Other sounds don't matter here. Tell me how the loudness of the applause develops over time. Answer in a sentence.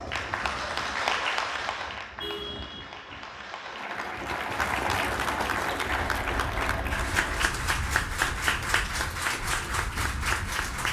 The volume of the applause goes down, then up.